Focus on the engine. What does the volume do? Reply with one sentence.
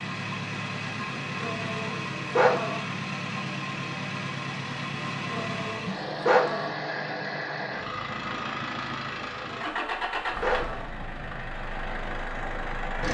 The loudness of the engine stays about the same.